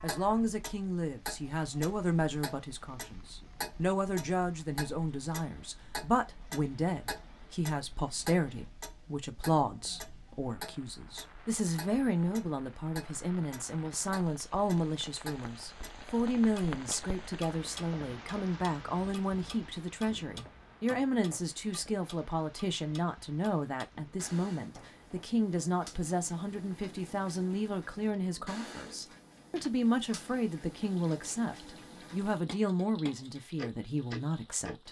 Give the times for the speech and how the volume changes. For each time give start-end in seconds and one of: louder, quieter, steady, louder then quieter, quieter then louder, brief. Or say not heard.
0.0-34.8 steady.